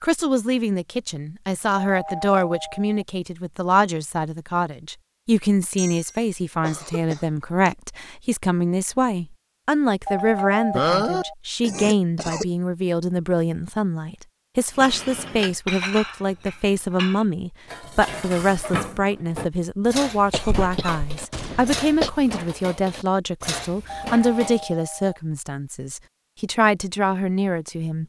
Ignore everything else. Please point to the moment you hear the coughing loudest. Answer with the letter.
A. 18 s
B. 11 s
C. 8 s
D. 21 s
B.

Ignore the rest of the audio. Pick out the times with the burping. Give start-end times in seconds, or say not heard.
not heard.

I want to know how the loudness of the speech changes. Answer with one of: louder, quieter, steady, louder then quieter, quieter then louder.
steady.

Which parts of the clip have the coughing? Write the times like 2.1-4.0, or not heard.
5.8-7.8, 10.7-12.4, 20.3-22.1.